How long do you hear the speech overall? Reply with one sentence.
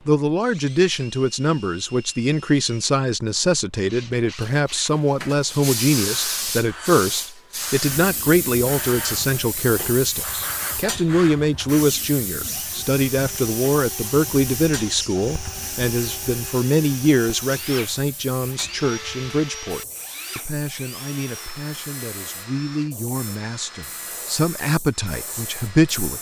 You can hear the speech for 26 seconds altogether.